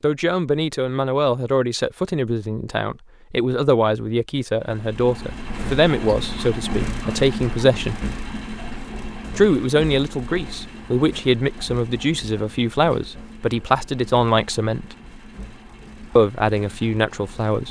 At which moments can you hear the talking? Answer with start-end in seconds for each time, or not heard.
0.0-8.0, 9.3-14.9, 16.1-17.6.